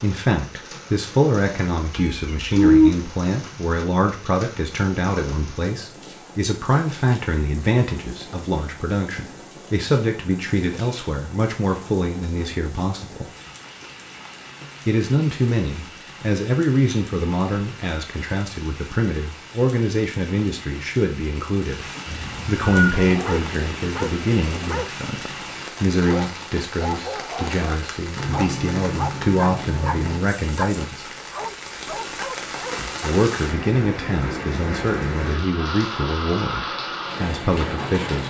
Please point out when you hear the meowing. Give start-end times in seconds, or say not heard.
1.9-2.9, 22.1-23.1, 28.1-30.2.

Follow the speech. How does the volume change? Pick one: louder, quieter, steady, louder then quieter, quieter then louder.
steady.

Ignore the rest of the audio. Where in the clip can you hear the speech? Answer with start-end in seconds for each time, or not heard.
0.0-13.3, 14.8-31.1, 32.8-38.2.